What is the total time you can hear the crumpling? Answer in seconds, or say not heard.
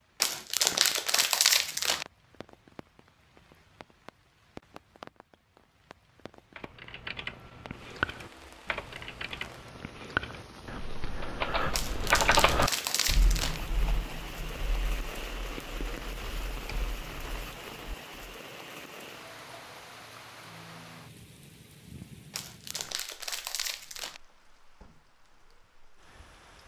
6 s.